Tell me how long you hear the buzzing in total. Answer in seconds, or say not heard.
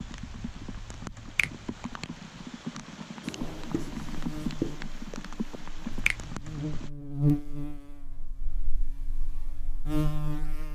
7 s.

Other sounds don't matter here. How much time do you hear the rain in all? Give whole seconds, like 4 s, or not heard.
7 s.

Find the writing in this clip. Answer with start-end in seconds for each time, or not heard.
3.2-4.8.